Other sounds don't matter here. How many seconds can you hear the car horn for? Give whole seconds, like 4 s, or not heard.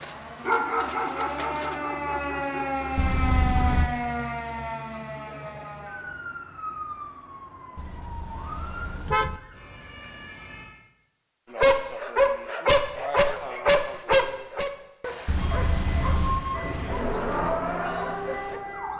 4 s.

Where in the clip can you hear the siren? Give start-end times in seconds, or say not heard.
0.0-10.7, 15.3-18.9.